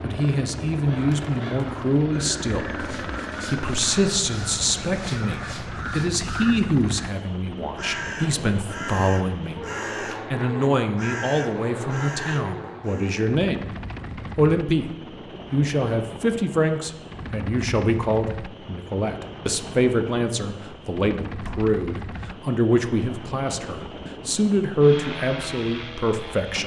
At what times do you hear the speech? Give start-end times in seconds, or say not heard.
0.0-9.6, 10.3-13.6, 14.3-14.9, 15.5-26.6.